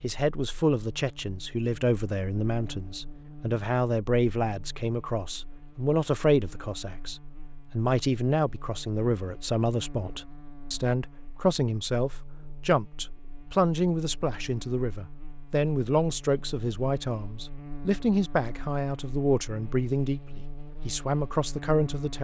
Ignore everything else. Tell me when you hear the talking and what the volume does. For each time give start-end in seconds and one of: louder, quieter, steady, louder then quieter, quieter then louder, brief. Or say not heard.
0.0-22.1 steady.